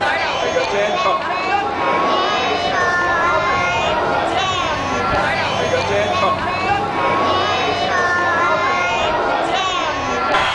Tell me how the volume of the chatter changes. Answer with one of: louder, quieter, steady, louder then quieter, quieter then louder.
steady.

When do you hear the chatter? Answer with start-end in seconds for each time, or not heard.
0.0-10.4.